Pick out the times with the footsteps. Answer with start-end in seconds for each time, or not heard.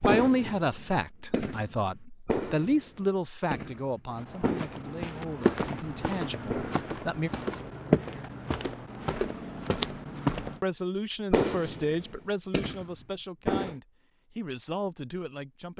4.1-10.6.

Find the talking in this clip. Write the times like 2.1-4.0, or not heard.
0.0-7.3, 10.6-15.7.